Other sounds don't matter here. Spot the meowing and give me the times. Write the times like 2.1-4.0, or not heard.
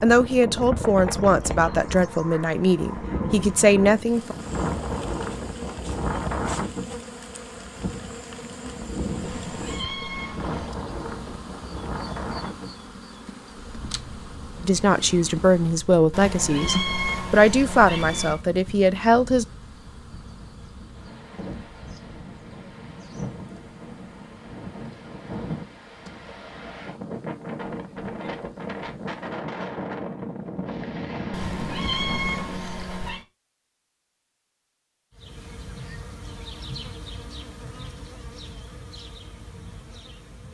9.2-10.8, 16.1-18.4, 31.3-33.2.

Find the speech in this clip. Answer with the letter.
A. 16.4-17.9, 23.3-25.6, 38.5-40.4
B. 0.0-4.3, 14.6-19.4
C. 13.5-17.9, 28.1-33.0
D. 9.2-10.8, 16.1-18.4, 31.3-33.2
B.